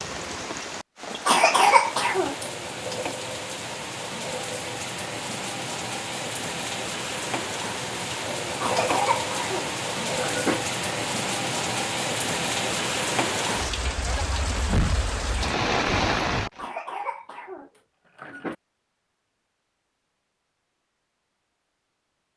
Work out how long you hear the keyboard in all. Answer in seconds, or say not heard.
not heard.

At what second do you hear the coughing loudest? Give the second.
2 s.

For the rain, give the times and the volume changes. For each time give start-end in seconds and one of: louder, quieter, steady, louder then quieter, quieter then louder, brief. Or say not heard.
0.0-16.6 louder.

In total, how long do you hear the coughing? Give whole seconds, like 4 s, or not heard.
5 s.